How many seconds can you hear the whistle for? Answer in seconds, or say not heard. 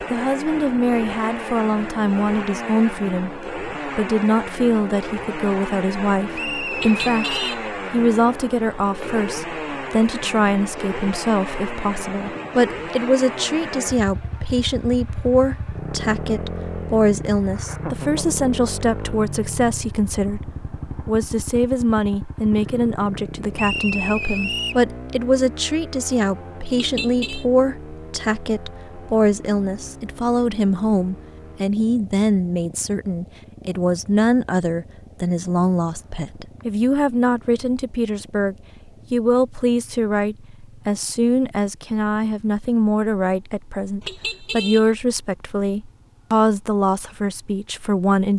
3 s.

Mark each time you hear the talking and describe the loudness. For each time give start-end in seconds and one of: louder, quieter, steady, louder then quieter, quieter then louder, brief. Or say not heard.
0.1-48.3 steady.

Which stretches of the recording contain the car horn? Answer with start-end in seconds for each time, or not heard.
6.8-7.6, 26.8-27.4, 44.0-44.9.